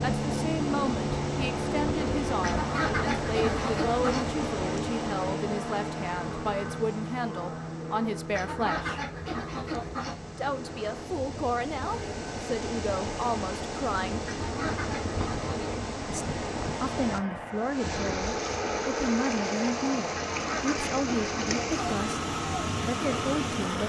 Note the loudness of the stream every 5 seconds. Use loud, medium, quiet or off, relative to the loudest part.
loud, medium, loud, loud, loud.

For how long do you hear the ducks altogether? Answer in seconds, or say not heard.
7 s.